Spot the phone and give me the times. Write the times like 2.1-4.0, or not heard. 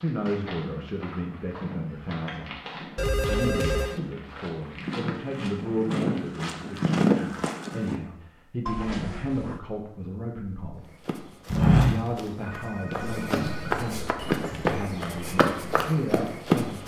3.0-4.0, 8.7-9.6, 12.4-13.8.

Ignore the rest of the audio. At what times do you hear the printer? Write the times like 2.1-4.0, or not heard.
not heard.